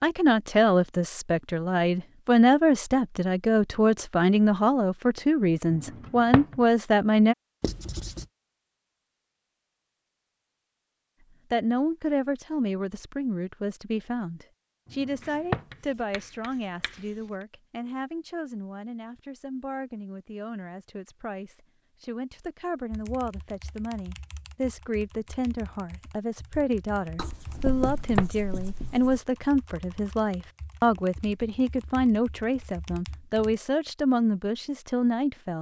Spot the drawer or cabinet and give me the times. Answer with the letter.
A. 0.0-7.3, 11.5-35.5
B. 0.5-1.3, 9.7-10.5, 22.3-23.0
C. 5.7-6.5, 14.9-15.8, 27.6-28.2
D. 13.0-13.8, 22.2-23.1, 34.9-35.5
C.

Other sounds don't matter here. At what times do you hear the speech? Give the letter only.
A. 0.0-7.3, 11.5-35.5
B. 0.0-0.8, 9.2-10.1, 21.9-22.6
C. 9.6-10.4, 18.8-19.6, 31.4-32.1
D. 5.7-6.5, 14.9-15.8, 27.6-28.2
A.